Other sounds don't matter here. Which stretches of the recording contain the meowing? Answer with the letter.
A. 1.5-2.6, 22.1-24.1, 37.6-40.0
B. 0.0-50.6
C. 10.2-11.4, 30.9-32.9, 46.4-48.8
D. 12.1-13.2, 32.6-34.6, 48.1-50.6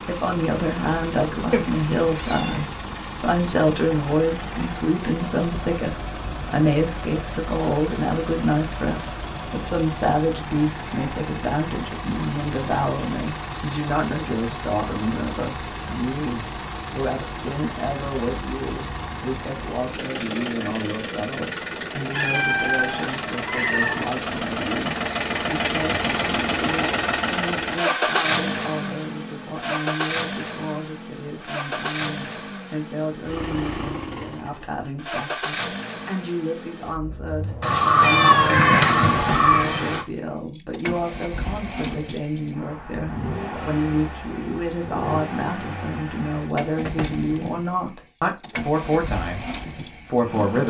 A.